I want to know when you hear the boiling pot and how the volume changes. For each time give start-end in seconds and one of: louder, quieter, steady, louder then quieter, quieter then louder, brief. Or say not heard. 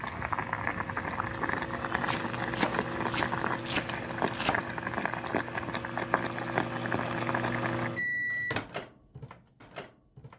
0.0-7.9 steady.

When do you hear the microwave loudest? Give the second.
8 s.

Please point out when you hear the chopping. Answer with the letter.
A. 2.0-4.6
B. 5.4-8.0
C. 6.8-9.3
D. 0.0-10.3
A.